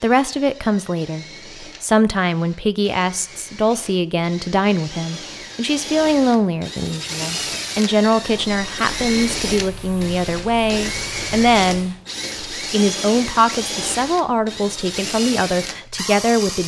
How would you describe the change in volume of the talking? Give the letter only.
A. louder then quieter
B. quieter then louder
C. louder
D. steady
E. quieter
D.